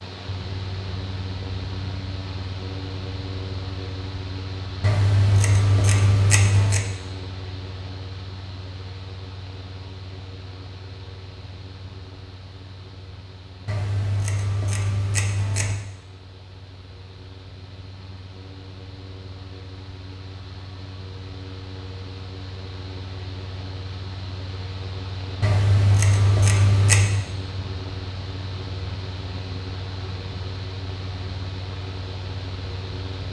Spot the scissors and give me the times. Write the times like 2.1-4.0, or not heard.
4.8-6.9, 13.7-15.8, 25.4-27.2.